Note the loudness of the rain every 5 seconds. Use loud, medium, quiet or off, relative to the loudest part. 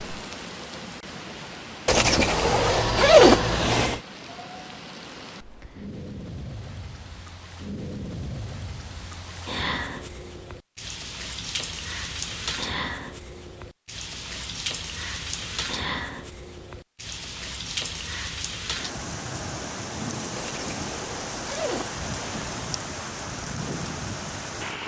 medium, loud, loud, loud, loud.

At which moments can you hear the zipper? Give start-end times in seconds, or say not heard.
1.9-4.0, 20.4-22.7.